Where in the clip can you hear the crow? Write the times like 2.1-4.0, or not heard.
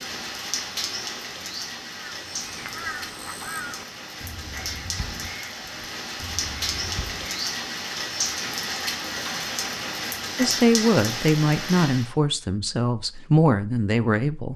1.9-7.4.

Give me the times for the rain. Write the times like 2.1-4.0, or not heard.
0.0-12.1.